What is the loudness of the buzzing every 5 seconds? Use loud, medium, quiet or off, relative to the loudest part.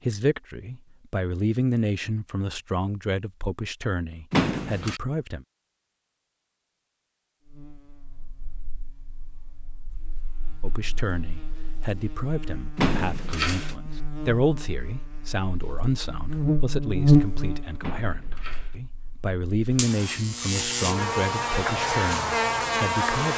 off, quiet, quiet, loud, loud.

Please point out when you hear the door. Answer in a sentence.
The door can be heard from 4.3 to 5.0 s, from 12.8 to 13.8 s and from 17.8 to 18.8 s.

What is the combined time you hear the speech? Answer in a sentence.
The speech can be heard for 18 seconds in total.